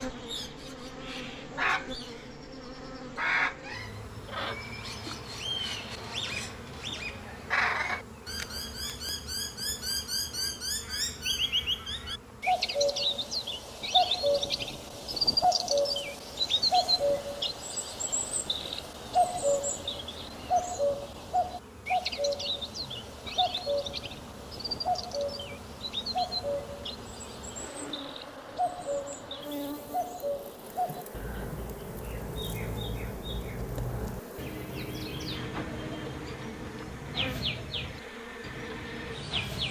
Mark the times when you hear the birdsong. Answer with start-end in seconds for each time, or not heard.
0.0-39.6.